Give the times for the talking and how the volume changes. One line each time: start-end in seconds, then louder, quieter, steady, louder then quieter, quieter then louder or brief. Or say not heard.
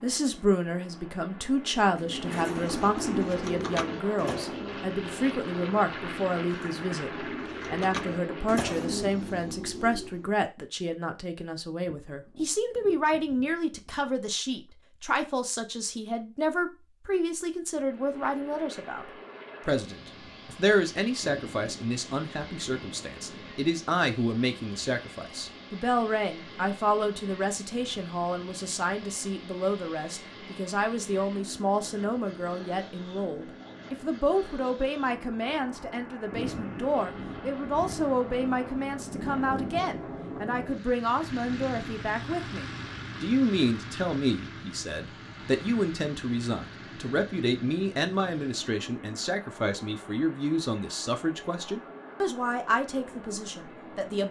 0.0-19.1 steady
19.6-54.2 steady.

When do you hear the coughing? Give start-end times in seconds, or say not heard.
not heard.